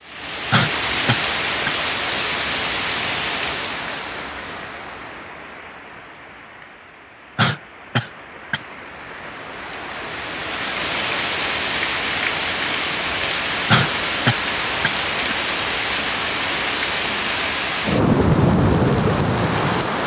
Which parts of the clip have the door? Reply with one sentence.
The door can't be heard in this clip.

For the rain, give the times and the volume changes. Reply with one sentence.
You can hear the rain from 0.0 to 20.0 s, getting quieter then louder.